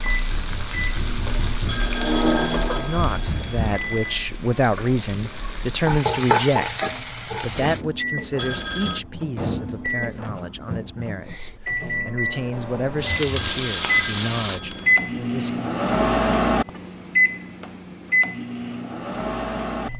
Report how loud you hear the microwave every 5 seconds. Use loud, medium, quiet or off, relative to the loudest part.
loud, medium, loud, loud.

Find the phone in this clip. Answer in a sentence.
The phone can be heard from 1.6 to 4.3 s, from 8.3 to 9.0 s and from 13.3 to 15.2 s.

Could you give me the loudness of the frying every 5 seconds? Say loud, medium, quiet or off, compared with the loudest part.
medium, loud, loud, off.